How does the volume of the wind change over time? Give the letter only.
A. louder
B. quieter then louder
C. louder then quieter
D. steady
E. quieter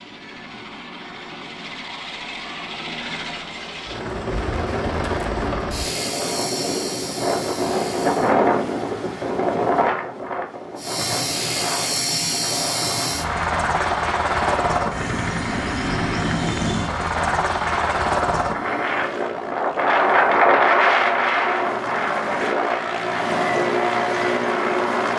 B.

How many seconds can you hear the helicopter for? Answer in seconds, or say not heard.
23 s.